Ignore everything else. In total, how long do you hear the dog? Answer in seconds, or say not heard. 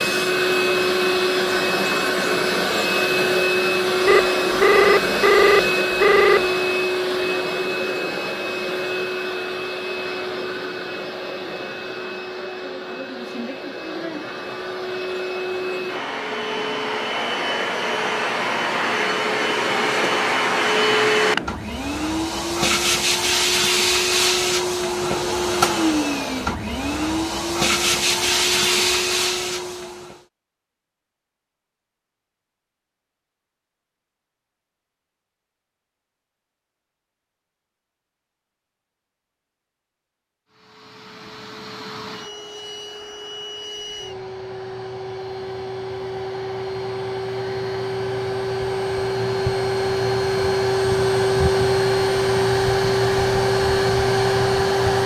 not heard.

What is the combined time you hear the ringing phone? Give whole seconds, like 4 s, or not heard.
2 s.